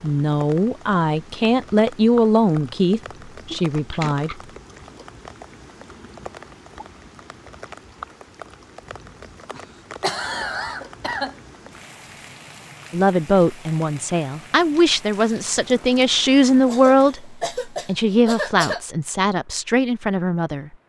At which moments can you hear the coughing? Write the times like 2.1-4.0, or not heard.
3.5-4.3, 9.6-11.3, 16.6-18.8.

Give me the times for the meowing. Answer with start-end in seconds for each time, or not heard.
not heard.